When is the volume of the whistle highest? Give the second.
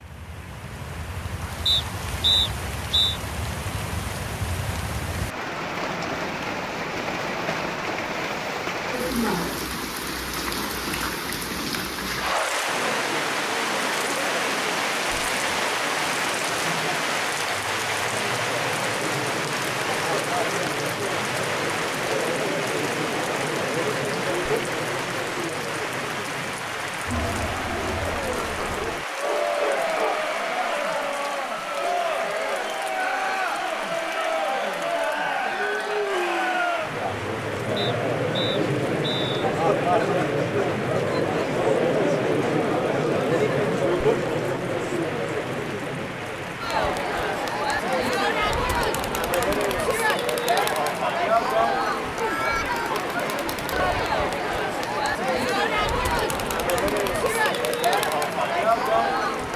2 s.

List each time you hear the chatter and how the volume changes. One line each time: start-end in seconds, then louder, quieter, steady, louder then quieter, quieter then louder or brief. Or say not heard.
12.6-59.5 louder.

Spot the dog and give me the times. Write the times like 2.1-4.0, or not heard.
29.2-30.3.